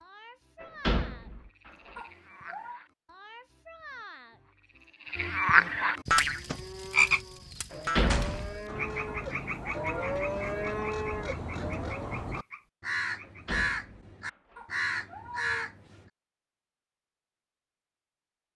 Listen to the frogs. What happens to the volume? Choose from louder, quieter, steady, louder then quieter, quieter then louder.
louder then quieter.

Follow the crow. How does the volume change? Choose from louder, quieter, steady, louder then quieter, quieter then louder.
louder.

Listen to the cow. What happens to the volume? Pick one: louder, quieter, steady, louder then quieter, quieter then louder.
louder.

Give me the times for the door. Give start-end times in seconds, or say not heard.
0.6-1.7, 7.7-8.8, 13.2-14.6.